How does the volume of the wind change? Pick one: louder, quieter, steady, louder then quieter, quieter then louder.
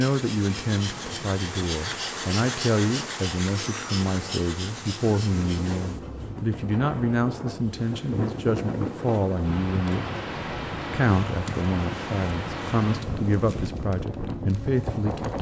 louder.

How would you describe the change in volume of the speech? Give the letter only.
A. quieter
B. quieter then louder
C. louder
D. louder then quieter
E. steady
E.